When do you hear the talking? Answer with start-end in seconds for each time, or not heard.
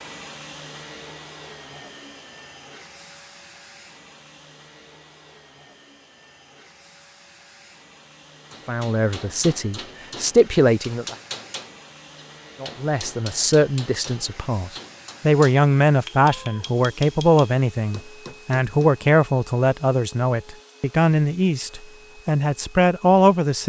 8.7-11.2, 12.6-23.6.